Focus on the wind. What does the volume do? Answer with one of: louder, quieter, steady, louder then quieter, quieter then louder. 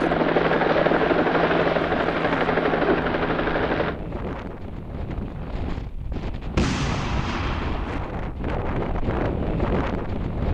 louder.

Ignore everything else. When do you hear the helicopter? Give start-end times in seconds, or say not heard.
0.0-4.0.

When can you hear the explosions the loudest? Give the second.
7 s.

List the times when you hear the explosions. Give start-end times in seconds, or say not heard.
6.5-8.1.